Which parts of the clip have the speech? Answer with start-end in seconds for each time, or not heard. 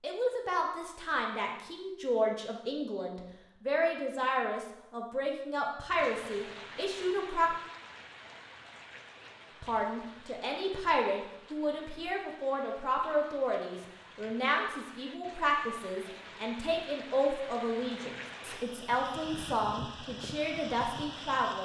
0.0-7.5, 9.6-21.6.